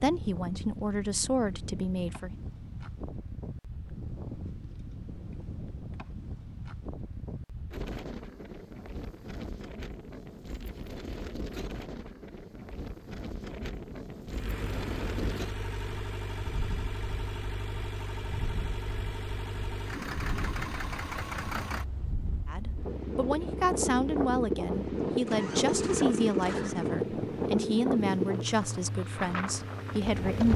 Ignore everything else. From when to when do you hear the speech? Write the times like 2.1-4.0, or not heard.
0.0-2.3, 22.4-30.5.